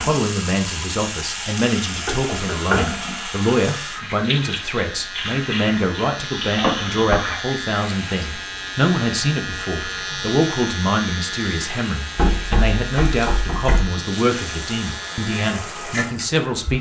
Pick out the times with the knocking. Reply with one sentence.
You can hear the knocking from 2.0 to 2.8 s, from 6.5 to 7.2 s and from 12.2 to 13.8 s.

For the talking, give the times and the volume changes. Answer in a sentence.
The talking can be heard from 0.0 to 16.7 s, at a steady volume.